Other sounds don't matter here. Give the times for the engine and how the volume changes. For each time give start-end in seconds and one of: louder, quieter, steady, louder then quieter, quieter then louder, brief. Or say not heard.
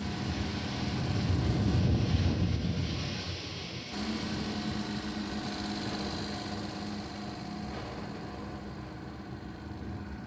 0.0-1.9 brief
3.9-10.2 quieter.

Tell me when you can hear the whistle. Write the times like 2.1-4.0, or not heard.
not heard.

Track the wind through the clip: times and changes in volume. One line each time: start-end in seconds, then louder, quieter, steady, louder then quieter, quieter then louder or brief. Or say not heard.
0.0-10.2 quieter.